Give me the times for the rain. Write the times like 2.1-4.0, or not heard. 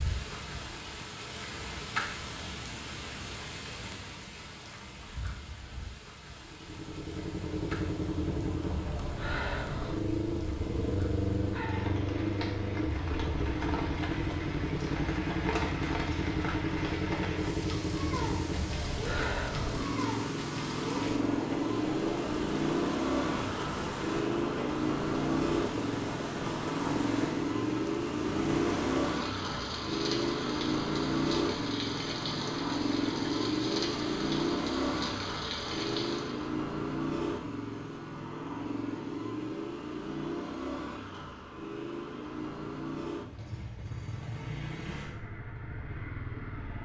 0.0-36.5.